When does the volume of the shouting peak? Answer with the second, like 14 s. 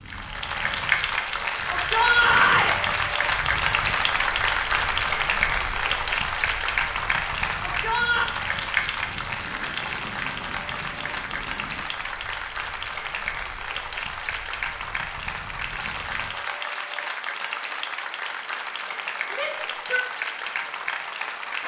2 s.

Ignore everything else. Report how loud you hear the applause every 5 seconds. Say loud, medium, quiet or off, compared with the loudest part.
loud, loud, medium, medium, medium.